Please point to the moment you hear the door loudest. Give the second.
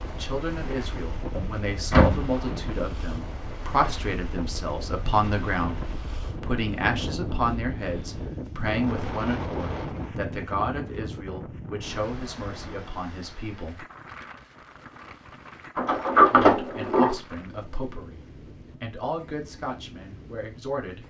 16 s.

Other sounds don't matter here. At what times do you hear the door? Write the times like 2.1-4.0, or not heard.
1.3-2.4, 15.8-17.1.